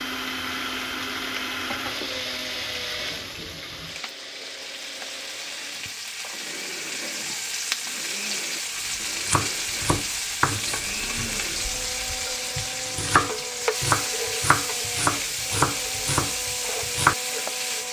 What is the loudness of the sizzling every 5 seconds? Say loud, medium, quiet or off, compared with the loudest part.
medium, loud, loud, loud.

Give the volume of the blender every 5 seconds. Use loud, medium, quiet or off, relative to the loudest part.
loud, medium, medium, medium.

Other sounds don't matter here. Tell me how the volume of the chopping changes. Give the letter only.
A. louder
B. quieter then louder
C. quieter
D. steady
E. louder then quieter
B.